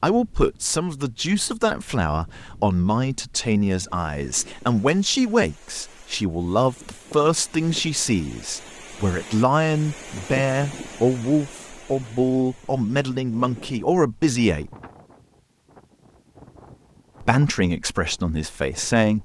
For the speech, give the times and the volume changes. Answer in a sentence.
You can hear the speech from 0.0 to 14.7 s, at a steady volume; and briefly from 17.2 to 19.1 s.